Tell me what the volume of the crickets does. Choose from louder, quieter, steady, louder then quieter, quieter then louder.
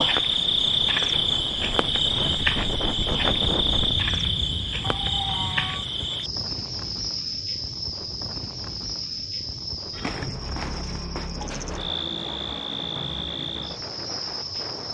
quieter.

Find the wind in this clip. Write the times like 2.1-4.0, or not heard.
0.1-14.8.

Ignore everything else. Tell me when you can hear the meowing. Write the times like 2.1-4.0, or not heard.
4.8-5.8.